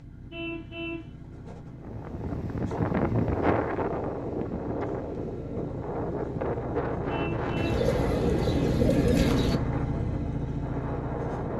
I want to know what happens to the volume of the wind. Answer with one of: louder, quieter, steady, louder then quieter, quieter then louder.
quieter.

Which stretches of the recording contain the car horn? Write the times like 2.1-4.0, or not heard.
0.3-1.1, 7.0-7.8.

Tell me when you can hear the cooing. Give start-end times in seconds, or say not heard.
7.5-9.6.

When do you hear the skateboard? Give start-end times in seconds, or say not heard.
not heard.